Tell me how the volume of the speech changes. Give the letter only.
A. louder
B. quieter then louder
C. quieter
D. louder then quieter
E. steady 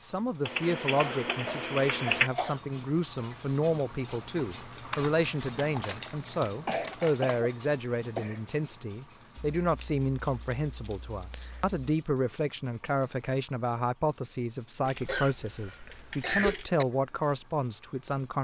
E.